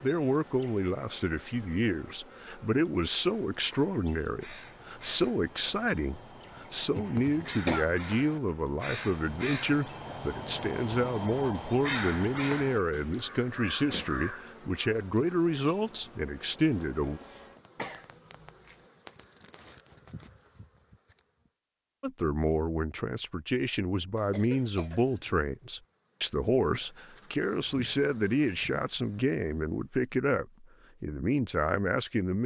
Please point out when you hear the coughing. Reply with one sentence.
The coughing can be heard from 6.9 to 7.9 s, from 17.8 to 18.8 s and from 24.1 to 25.2 s.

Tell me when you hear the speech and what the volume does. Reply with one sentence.
You can hear the speech from 0.0 to 17.2 s, at a steady volume; and from 22.0 to 32.4 s, at a steady volume.